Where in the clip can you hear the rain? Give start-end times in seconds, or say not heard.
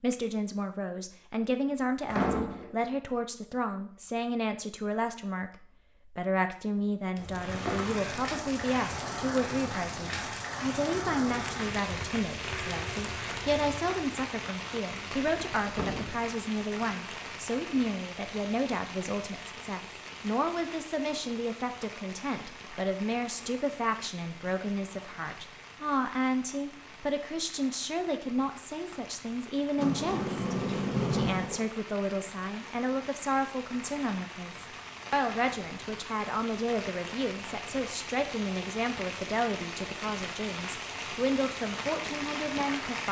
7.3-43.0.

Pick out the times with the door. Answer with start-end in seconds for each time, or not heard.
2.0-2.8, 14.9-16.2, 29.8-31.6.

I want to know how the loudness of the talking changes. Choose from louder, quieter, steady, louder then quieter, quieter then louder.
steady.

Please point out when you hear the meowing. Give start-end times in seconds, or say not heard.
not heard.